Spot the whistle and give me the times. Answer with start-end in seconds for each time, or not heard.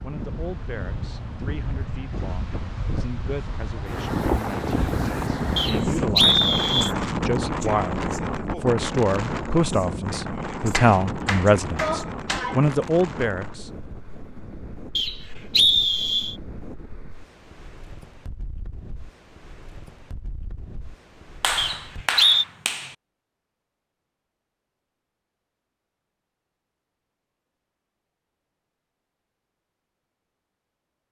5.5-6.9, 14.9-16.4, 21.6-22.4.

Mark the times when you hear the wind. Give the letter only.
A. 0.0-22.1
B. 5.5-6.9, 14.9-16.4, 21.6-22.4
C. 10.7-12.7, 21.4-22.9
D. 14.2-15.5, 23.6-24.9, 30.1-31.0
A.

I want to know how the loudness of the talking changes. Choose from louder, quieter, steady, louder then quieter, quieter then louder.
louder.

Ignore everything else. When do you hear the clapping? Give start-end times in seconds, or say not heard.
10.7-12.7, 21.4-22.9.